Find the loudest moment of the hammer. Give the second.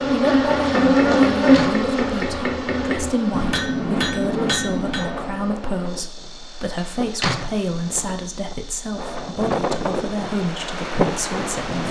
4 s.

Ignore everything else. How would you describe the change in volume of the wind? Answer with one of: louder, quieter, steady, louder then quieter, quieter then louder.
louder.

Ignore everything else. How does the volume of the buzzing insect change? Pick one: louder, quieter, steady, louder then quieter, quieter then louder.
quieter.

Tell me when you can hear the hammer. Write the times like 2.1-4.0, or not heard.
0.0-5.2.